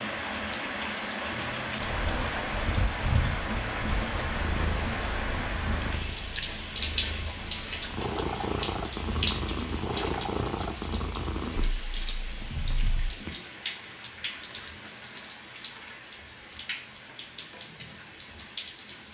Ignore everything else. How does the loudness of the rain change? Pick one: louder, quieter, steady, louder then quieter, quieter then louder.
quieter.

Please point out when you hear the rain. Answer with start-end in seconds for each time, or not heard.
0.0-19.0.